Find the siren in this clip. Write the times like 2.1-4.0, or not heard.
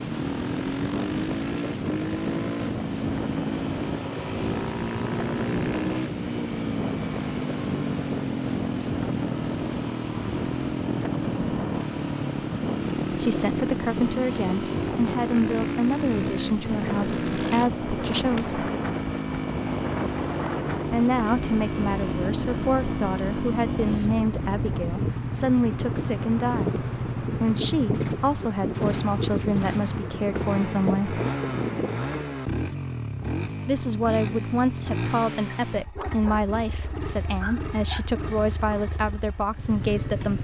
not heard.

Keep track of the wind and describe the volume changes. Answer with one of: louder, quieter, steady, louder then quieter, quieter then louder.
steady.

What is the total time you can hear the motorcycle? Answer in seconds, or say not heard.
40 s.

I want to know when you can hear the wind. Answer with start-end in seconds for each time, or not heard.
0.0-32.1.